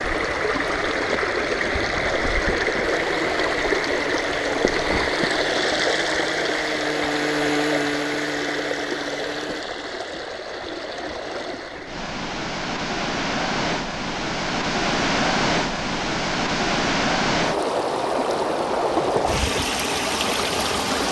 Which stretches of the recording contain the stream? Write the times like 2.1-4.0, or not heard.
0.0-21.0.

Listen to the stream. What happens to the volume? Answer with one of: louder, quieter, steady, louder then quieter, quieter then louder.
quieter then louder.